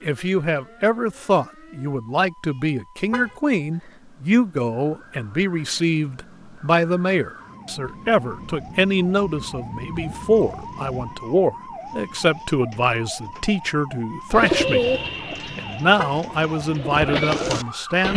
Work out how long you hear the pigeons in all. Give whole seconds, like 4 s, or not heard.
4 s.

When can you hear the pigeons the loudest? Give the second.
15 s.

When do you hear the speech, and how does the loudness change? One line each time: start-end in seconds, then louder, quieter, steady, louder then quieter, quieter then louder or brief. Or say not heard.
0.0-14.8 steady
15.6-18.1 brief.